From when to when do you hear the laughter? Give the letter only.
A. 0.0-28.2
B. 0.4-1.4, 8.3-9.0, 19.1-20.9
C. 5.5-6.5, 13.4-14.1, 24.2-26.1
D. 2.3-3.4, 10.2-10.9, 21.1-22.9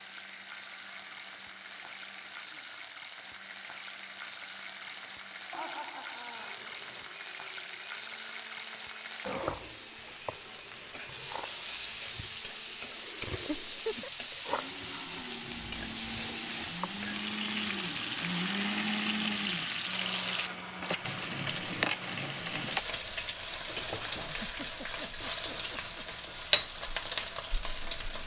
C.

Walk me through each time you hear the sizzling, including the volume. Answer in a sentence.
The sizzling can be heard from 0.0 to 28.2 s, getting louder.